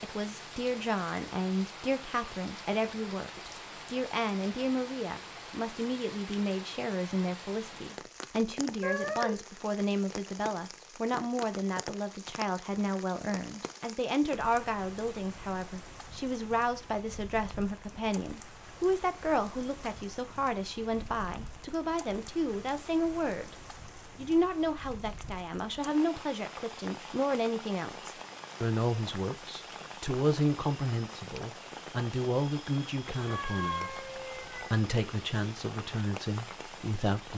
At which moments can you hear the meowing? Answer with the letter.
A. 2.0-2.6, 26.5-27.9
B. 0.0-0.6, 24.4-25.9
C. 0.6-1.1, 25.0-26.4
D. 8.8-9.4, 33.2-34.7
D.